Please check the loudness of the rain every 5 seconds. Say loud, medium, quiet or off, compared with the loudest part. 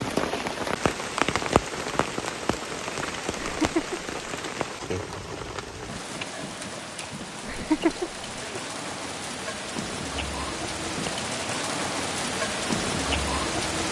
loud, medium, loud.